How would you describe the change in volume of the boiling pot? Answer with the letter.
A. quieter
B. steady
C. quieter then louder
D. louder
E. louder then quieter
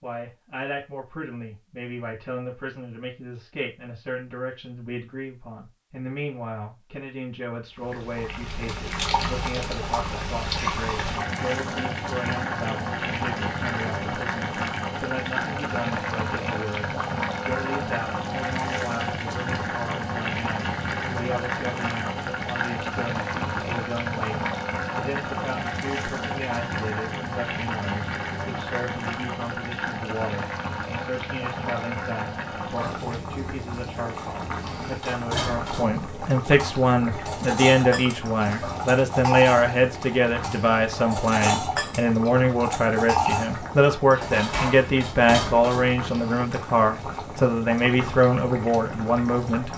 A.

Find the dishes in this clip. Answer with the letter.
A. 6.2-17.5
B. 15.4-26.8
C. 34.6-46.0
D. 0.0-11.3
C.